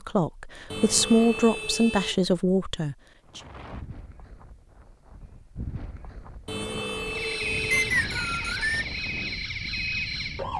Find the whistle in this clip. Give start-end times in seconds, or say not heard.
7.7-8.8.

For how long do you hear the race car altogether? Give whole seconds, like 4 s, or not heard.
not heard.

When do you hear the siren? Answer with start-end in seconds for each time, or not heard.
7.0-10.5.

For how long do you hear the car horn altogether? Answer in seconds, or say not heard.
3 s.